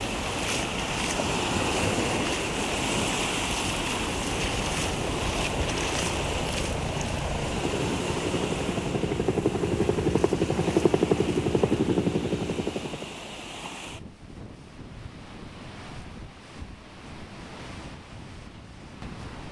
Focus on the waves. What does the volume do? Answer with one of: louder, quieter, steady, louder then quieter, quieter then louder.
quieter.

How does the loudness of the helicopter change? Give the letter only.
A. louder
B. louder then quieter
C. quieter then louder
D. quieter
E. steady
A.